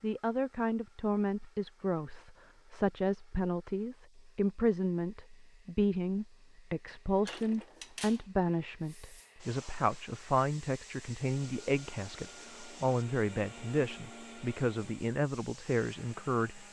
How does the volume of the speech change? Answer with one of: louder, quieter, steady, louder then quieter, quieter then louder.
steady.